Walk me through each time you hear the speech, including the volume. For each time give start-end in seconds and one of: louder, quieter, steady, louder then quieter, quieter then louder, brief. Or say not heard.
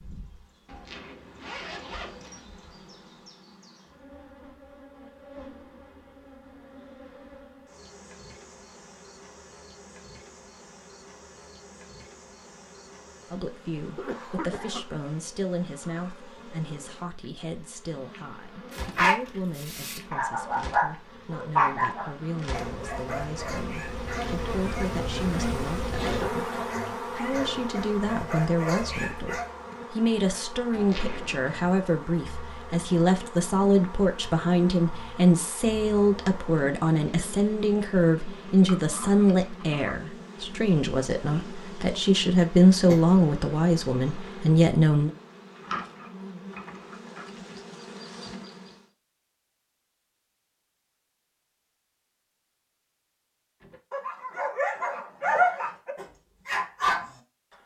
13.3-45.1 louder.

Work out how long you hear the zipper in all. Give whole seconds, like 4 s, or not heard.
3 s.